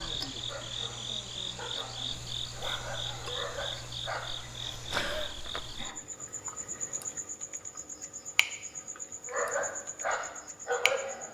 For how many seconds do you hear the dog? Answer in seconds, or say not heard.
6 s.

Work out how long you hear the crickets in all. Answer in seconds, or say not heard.
11 s.